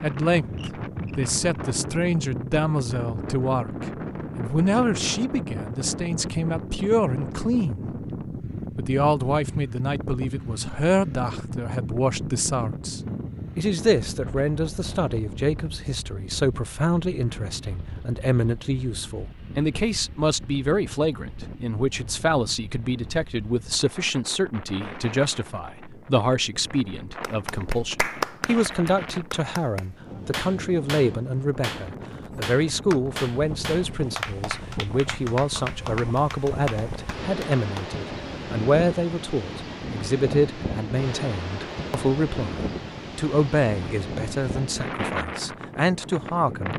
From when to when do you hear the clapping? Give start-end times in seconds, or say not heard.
27.2-37.9.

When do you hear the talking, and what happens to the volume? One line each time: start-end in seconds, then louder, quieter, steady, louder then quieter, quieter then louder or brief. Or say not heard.
0.0-7.8 steady
8.8-46.7 steady.